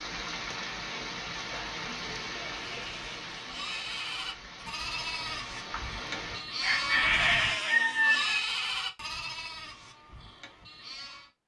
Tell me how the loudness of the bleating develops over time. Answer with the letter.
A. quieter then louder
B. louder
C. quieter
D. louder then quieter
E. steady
D.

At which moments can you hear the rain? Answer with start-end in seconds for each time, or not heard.
0.0-6.5.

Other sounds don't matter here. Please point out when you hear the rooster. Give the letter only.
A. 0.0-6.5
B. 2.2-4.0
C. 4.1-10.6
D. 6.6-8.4
D.